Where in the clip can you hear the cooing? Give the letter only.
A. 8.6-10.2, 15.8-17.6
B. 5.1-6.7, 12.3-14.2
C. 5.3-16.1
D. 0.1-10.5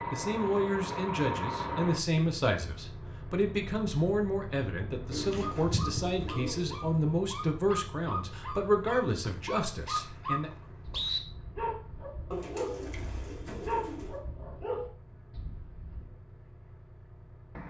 B.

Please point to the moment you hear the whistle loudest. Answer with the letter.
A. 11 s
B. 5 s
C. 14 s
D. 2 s
A.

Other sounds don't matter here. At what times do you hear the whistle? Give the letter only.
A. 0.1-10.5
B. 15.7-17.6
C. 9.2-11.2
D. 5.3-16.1
C.